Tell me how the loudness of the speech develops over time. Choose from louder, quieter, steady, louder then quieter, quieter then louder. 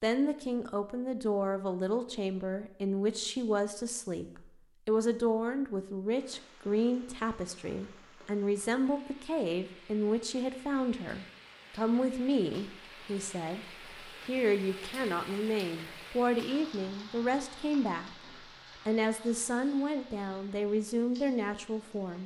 steady.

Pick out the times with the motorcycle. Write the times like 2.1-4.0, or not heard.
not heard.